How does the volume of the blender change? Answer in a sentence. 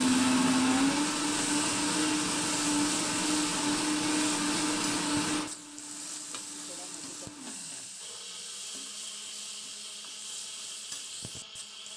The volume of the blender goes down.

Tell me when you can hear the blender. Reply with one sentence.
You can hear the blender from 0.0 to 11.9 s.